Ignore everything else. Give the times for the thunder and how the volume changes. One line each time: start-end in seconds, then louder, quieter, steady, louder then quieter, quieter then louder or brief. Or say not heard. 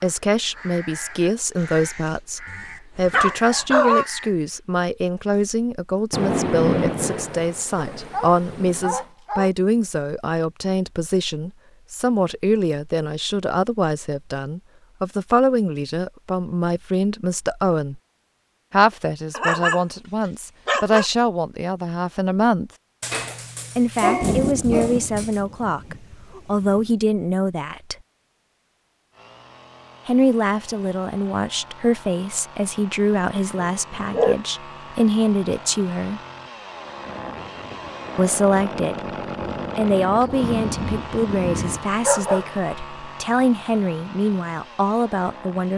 6.1-9.0 brief
24.1-26.9 brief
37.0-41.9 louder.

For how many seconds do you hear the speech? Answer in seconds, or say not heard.
39 s.